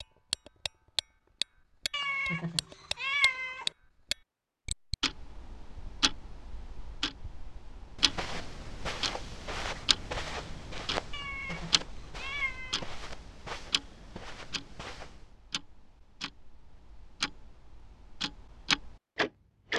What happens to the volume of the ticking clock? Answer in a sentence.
The volume of the ticking clock goes down, then up.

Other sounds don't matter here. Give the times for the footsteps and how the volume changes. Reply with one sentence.
The footsteps can be heard from 8.0 to 15.3 s, getting quieter.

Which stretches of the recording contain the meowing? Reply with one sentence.
You can hear the meowing from 1.9 to 3.6 s and from 11.1 to 12.8 s.